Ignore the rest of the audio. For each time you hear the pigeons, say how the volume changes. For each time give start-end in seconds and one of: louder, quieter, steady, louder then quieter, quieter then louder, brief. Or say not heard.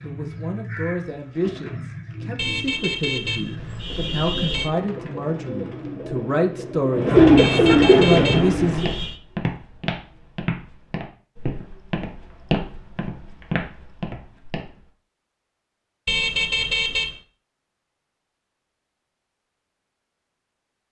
0.0-8.9 louder.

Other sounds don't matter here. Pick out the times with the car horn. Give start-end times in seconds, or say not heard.
2.4-4.7, 7.3-9.2, 16.1-17.1.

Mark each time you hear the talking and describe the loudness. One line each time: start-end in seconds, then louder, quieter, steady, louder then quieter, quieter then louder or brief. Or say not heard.
0.0-8.9 louder.